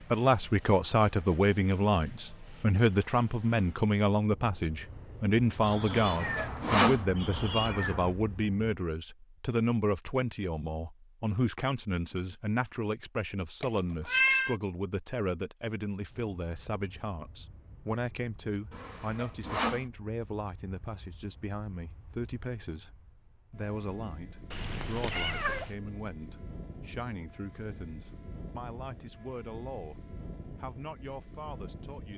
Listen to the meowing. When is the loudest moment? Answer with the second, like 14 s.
14 s.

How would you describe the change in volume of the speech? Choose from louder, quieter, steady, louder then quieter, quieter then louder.
quieter.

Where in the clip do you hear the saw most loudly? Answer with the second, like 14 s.
7 s.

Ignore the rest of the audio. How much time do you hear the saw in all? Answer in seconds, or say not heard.
2 s.